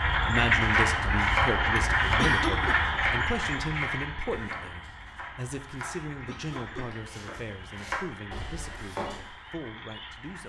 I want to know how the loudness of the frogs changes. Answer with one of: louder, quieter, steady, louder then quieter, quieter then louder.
quieter.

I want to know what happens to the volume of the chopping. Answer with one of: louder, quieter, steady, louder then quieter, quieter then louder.
quieter then louder.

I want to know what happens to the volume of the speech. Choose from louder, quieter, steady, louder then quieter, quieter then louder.
quieter.